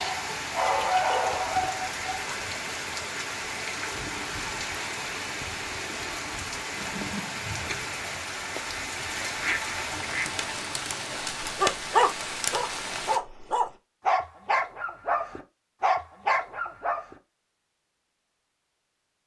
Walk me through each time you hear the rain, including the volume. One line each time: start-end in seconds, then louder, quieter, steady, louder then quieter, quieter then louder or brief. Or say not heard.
0.0-13.2 steady.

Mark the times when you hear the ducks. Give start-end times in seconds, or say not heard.
9.2-10.5.